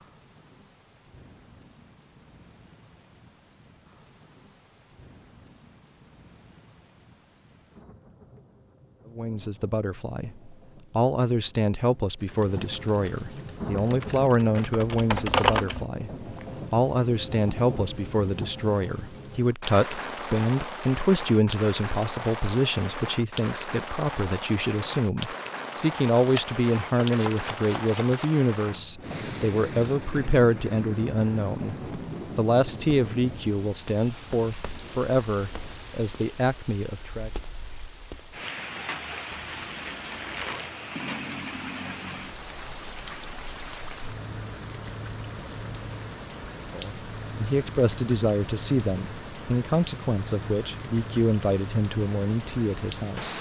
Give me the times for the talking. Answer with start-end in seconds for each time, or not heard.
9.2-31.8, 32.4-37.3, 46.7-53.3.